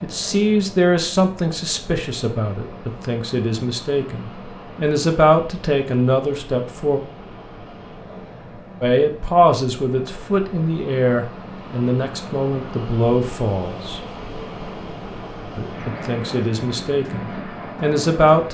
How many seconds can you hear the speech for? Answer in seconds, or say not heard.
15 s.